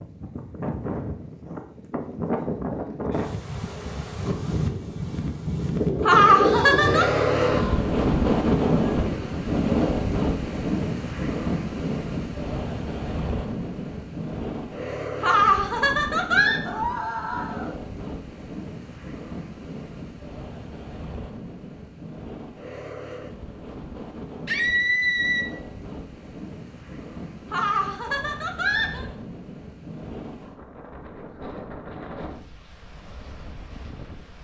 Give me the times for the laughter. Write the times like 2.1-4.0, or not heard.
6.0-7.1, 15.2-16.6, 27.5-29.1.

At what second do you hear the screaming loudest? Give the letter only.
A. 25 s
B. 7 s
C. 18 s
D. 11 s
A.